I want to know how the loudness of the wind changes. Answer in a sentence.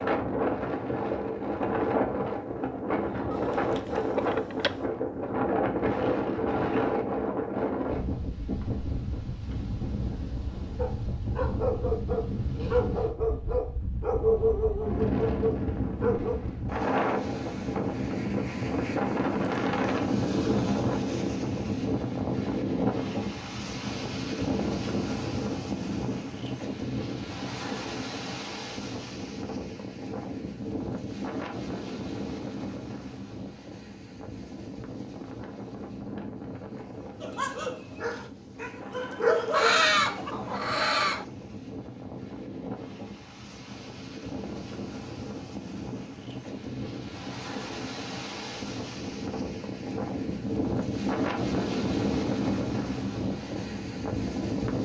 The loudness of the wind goes down, then up.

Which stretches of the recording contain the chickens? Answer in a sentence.
The chickens can be heard from 3.3 to 4.9 s and from 39.5 to 41.2 s.